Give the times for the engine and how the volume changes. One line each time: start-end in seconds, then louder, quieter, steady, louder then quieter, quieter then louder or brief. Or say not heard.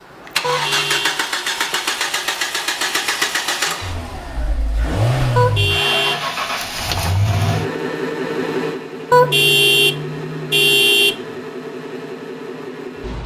0.0-13.2 quieter.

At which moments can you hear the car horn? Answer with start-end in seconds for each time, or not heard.
0.4-1.2, 5.3-6.2, 9.1-11.2.